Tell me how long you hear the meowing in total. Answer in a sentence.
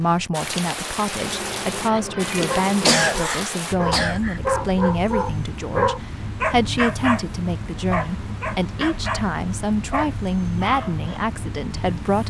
You can hear the meowing for 2 seconds altogether.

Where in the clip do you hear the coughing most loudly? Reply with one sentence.
The volume of the coughing peaks at 3 seconds.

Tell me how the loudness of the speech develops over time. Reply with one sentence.
The loudness of the speech stays about the same.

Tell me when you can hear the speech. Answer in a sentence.
The speech can be heard from 0.0 to 12.2 s.